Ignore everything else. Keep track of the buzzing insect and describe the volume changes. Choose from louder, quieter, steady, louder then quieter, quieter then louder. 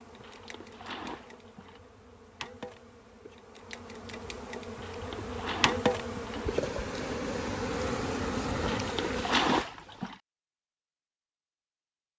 louder.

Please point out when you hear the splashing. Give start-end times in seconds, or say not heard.
0.1-1.8, 4.8-6.6, 8.6-10.2.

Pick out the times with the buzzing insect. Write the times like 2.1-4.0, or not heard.
0.0-9.7.